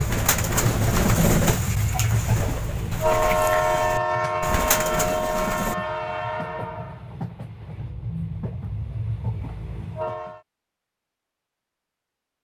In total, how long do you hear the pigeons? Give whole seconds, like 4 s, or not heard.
6 s.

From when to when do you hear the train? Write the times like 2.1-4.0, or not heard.
0.0-10.4.